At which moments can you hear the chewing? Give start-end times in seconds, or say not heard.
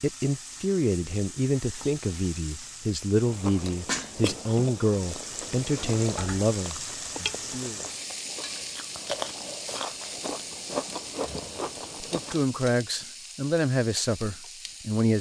3.2-12.4.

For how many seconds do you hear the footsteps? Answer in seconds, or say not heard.
not heard.